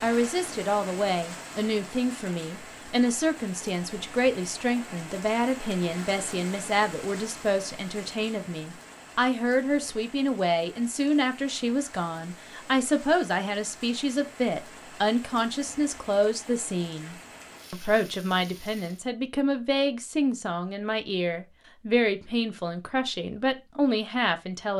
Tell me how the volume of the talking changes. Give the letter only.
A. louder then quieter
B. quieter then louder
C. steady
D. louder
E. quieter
C.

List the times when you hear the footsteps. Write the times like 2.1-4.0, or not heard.
not heard.